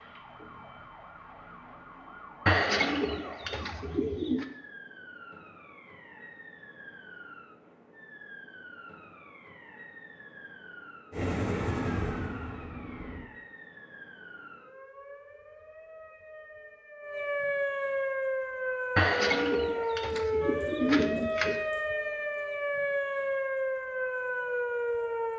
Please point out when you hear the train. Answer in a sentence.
You can hear the train from 11.1 to 13.2 s.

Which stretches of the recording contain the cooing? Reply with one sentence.
The cooing can be heard from 2.5 to 4.5 s and from 18.9 to 21.6 s.